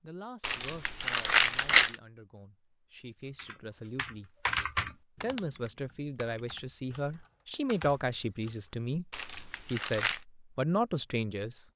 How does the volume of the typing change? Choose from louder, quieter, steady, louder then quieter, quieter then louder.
quieter then louder.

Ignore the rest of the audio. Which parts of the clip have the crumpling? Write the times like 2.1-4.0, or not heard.
0.4-1.9, 9.1-10.2.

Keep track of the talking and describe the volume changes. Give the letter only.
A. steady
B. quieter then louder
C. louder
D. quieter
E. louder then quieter
C.